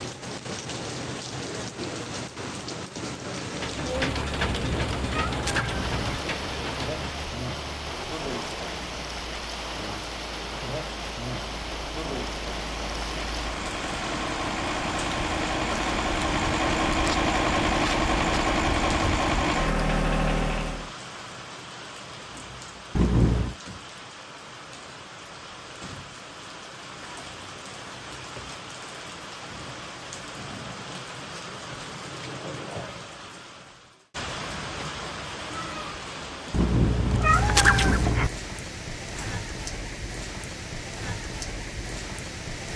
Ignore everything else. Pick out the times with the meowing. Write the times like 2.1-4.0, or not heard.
4.5-6.2, 22.9-23.6, 36.5-38.3.